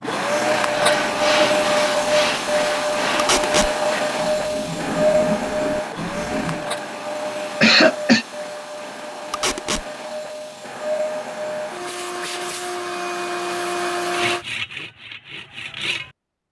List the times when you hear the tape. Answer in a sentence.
The tape can be heard from 3.1 to 3.7 s and from 9.3 to 9.8 s.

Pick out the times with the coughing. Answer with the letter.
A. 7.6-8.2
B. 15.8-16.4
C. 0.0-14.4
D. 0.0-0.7
A.